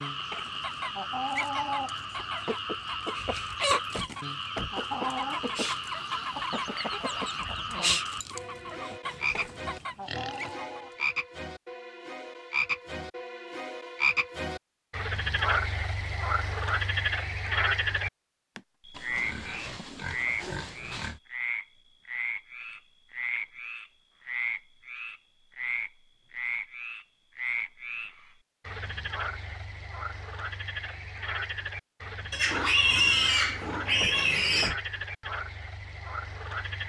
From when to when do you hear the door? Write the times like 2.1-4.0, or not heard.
3.9-4.8, 34.0-34.9.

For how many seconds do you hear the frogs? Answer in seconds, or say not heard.
37 s.